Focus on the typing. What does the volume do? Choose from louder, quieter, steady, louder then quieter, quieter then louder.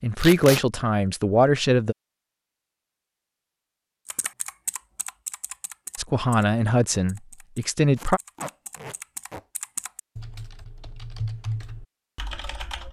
quieter then louder.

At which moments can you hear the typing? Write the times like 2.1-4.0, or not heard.
4.0-12.8.